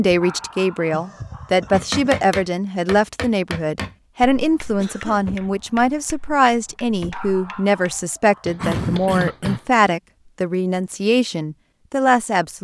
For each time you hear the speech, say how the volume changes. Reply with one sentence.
The speech can be heard from 0.0 to 12.5 s, at a steady volume.